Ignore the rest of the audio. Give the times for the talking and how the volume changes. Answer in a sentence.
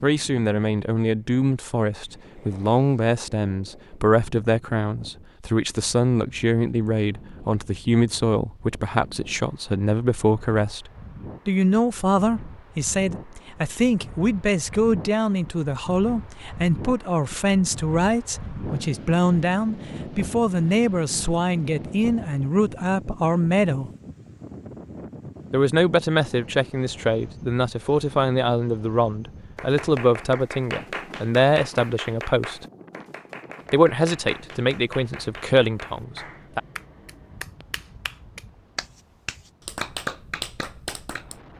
The talking can be heard from 0.0 to 23.9 s, at a steady volume; from 25.5 to 32.6 s, at a steady volume; and briefly from 33.7 to 36.6 s.